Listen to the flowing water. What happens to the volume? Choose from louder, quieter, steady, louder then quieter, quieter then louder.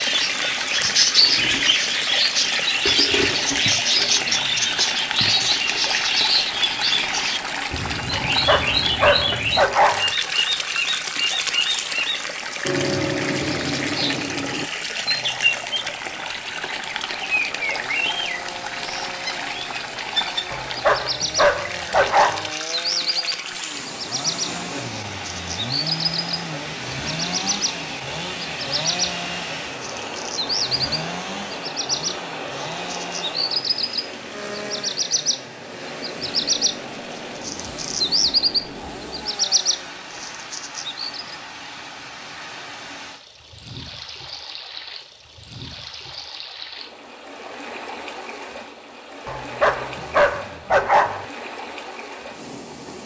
quieter.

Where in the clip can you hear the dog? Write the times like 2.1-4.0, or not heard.
8.2-10.2, 20.5-22.5, 49.2-51.2.